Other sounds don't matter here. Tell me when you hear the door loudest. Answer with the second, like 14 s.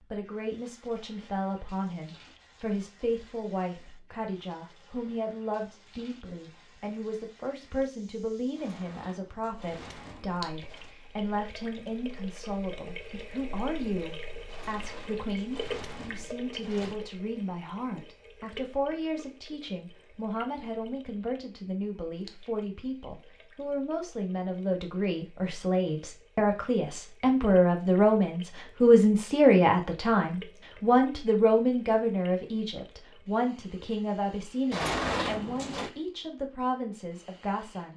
35 s.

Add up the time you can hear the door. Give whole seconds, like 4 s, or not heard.
6 s.